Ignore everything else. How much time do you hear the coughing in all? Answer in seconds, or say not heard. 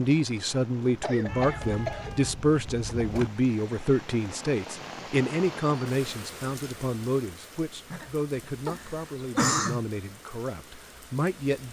4 s.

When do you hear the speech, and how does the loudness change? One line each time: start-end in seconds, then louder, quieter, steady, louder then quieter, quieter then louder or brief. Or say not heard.
0.0-11.6 quieter.